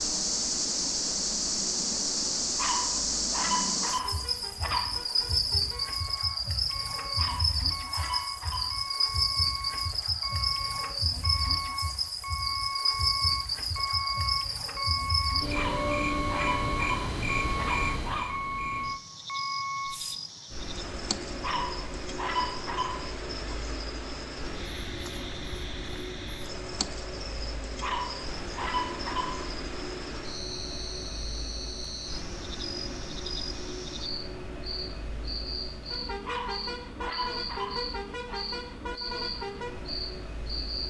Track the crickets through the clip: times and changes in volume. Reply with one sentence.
You can hear the crickets from 0.0 to 40.8 s, getting quieter.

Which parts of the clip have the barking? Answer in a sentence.
The barking can be heard from 2.5 to 5.2 s, from 7.2 to 8.8 s, from 15.5 to 18.4 s, from 21.4 to 23.1 s, from 27.8 to 29.4 s and from 36.2 to 38.4 s.